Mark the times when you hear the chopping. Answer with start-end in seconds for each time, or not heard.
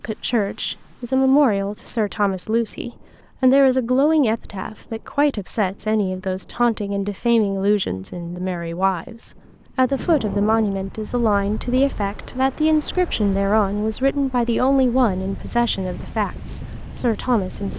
not heard.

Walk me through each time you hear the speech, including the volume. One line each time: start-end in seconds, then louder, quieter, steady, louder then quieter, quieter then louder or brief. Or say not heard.
0.0-17.7 steady.